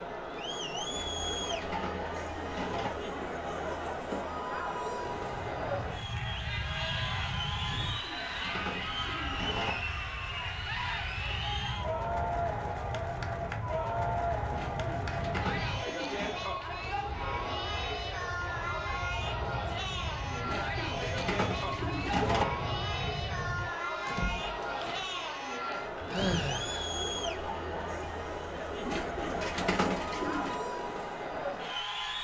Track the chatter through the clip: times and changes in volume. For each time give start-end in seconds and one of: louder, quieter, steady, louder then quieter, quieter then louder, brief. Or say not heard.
0.0-32.2 steady.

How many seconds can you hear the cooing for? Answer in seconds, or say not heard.
10 s.